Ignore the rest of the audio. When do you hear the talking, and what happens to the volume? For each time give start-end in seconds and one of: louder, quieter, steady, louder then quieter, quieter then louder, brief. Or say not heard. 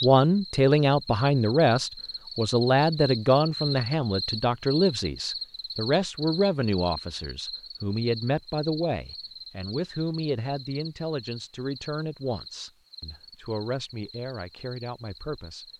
0.0-15.7 quieter.